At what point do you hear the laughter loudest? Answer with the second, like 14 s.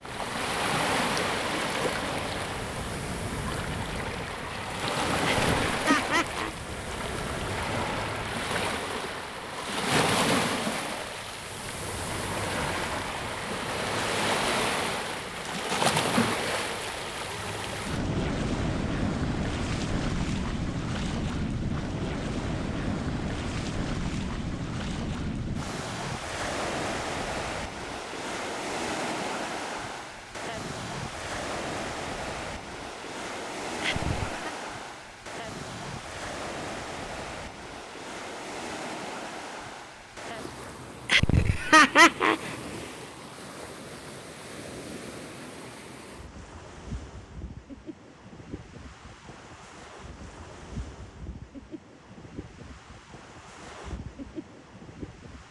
42 s.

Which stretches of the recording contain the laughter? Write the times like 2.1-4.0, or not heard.
5.2-6.5, 33.8-34.5, 41.0-42.5.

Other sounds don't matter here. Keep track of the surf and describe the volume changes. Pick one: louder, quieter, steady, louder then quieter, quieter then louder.
quieter.